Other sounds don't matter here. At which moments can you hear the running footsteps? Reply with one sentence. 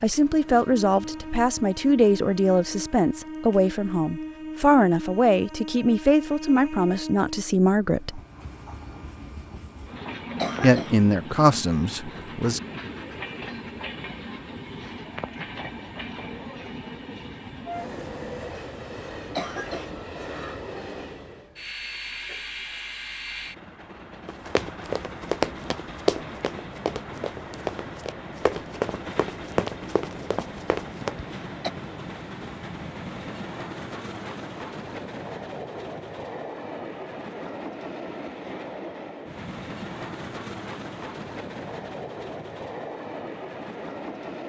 You can hear the running footsteps from 24.2 to 31.1 s.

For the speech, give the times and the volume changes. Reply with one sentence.
The speech can be heard from 0.0 to 8.2 s, at a steady volume; and briefly from 10.6 to 12.6 s.